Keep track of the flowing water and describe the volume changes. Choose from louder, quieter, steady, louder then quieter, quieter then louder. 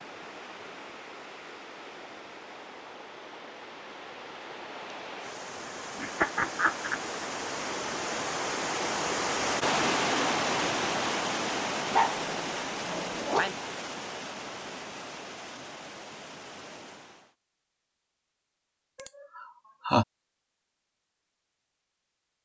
louder then quieter.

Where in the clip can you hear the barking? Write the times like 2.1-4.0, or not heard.
11.9-13.6.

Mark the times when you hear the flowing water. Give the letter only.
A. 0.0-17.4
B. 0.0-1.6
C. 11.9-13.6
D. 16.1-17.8
A.